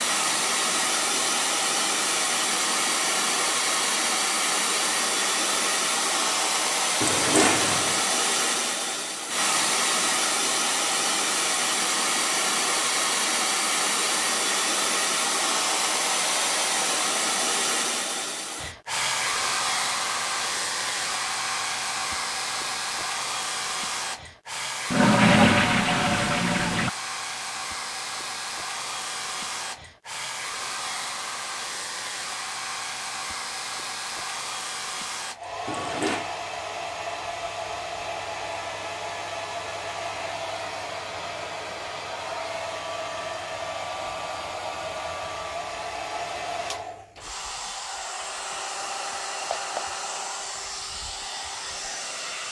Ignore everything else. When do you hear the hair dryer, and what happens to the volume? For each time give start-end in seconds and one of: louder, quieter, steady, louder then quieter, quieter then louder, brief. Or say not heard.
0.0-52.4 quieter.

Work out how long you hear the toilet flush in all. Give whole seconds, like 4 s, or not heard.
4 s.